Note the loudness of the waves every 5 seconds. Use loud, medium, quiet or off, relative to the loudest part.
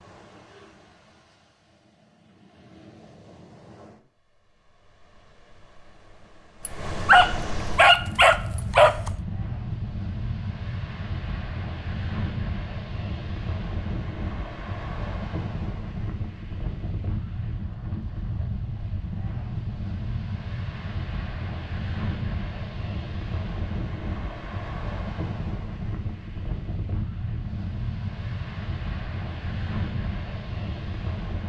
quiet, loud, loud, loud, loud, loud, loud.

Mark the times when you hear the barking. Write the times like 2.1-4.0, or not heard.
6.7-9.1.